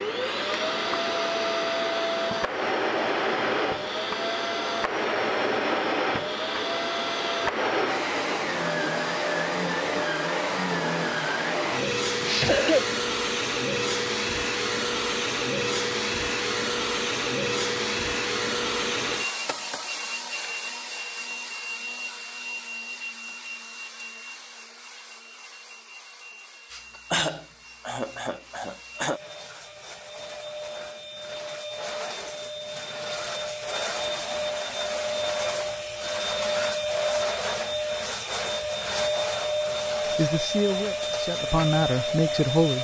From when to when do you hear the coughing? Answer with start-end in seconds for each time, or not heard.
12.2-12.8, 26.7-29.2.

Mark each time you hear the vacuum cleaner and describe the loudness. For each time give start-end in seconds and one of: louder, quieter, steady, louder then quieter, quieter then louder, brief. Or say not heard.
0.0-42.7 quieter then louder.